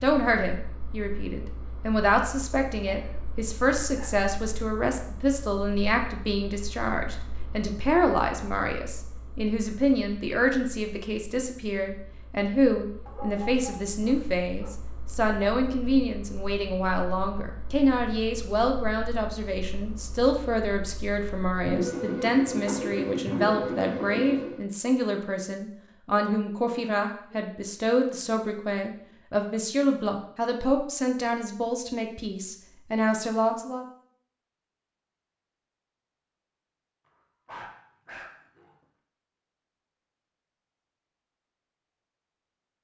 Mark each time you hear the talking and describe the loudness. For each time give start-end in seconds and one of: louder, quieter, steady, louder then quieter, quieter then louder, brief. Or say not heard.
0.0-33.9 steady.